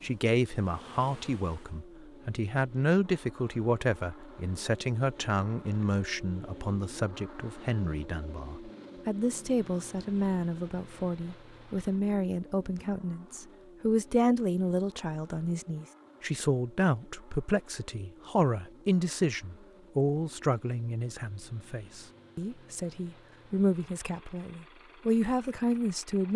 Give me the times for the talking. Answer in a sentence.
The talking can be heard from 0.0 to 26.3 s.